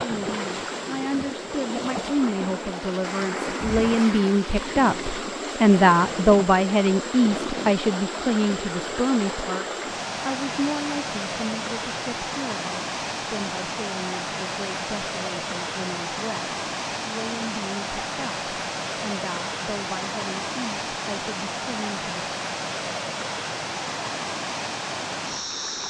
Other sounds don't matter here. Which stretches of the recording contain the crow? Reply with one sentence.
The crow can't be heard in this clip.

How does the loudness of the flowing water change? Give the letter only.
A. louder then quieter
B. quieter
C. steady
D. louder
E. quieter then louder
C.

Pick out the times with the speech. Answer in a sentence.
You can hear the speech from 0.0 to 22.1 s.